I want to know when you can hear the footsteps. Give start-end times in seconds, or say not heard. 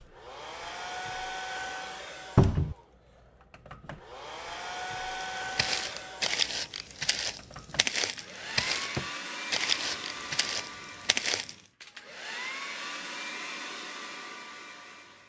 5.1-11.6.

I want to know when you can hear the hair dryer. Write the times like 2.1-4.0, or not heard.
0.0-15.2.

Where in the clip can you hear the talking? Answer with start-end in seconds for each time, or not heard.
not heard.